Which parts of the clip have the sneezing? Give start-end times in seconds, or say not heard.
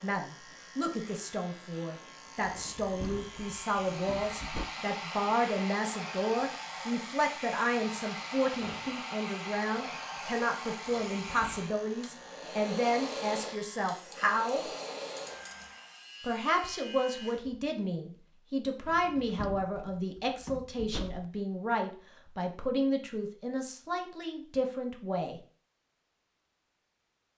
not heard.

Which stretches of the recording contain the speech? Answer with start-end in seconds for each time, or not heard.
0.0-14.7, 16.2-25.4.